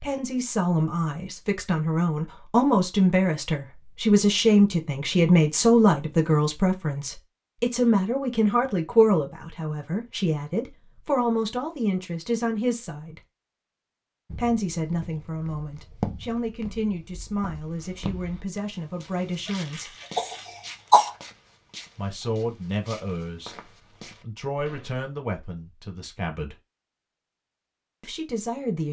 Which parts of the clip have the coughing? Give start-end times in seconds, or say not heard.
19.4-21.1.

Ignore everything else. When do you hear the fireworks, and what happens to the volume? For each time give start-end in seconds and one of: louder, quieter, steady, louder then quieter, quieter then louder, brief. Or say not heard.
not heard.